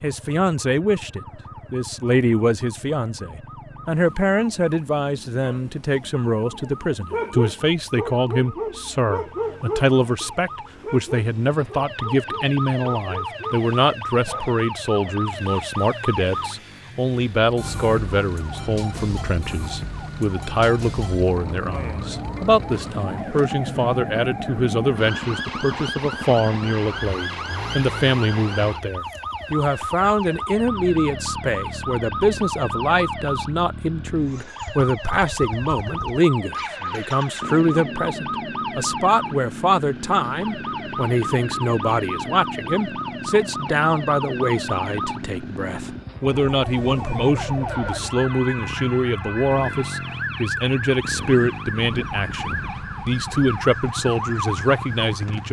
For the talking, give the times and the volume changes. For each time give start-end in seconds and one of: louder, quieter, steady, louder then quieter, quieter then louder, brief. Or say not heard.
0.0-55.4 steady.